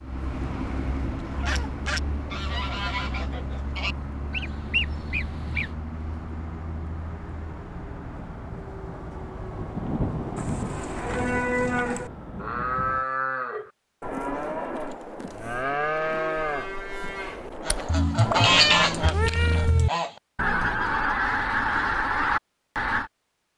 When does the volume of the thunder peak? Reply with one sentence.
The volume of the thunder peaks at 10 seconds.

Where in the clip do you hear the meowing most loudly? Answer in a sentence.
The loudest moment of the meowing is at 19 seconds.